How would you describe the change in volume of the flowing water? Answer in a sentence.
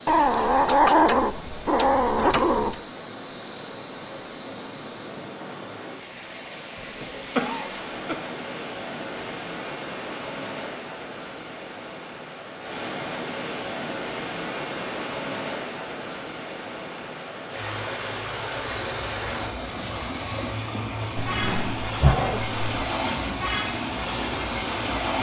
The volume of the flowing water goes up.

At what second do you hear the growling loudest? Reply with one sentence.
The loudest moment of the growling is at 1 second.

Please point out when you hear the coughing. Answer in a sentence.
You can hear the coughing from 6.8 to 8.2 s.